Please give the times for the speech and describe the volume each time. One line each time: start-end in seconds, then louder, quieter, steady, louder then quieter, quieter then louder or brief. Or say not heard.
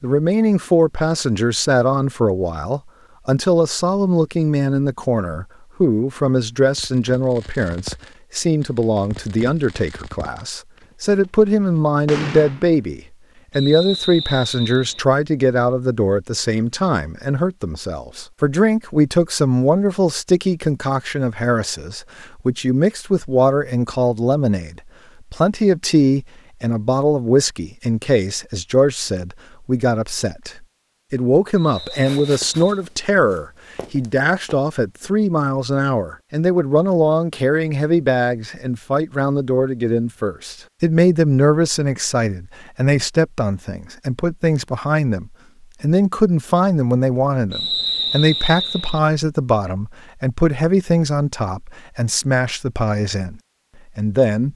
0.0-54.5 steady.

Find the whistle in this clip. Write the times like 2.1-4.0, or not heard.
13.5-15.1, 31.6-32.9, 47.5-49.0.